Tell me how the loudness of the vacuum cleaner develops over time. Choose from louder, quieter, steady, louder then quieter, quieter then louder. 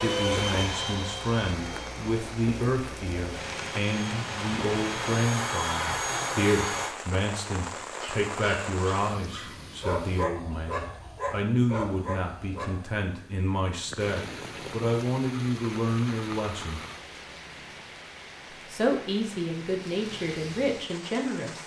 quieter then louder.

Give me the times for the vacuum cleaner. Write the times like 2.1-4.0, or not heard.
0.0-7.0.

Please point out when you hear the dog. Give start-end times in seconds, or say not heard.
8.0-12.9.